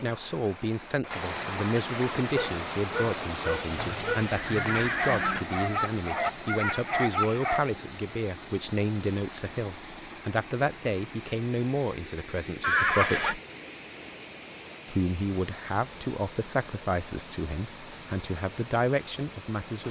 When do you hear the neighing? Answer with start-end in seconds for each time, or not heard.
3.8-5.5, 12.6-13.3.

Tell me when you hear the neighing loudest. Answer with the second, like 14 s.
13 s.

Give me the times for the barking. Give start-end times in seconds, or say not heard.
2.4-7.6.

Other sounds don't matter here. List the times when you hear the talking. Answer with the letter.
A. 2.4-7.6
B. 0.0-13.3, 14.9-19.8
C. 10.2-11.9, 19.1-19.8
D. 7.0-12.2
B.